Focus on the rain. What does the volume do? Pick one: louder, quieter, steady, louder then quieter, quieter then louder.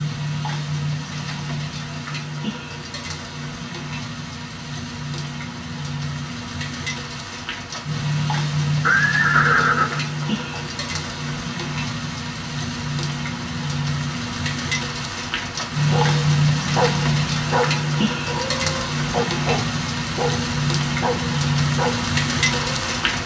louder.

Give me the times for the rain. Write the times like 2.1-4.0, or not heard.
0.0-23.2.